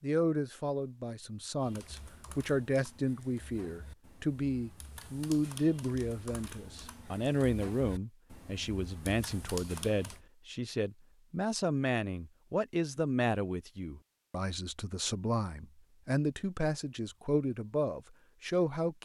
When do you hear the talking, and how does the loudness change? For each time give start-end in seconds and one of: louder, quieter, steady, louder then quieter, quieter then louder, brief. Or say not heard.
0.0-18.9 steady.